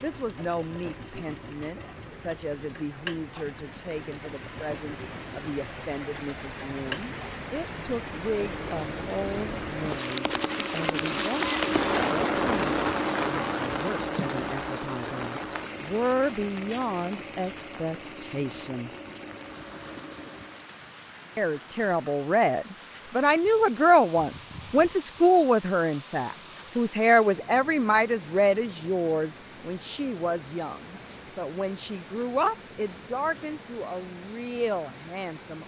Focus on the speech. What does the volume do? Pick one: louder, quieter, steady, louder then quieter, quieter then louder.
louder then quieter.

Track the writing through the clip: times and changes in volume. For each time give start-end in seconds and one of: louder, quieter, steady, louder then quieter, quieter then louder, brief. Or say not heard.
not heard.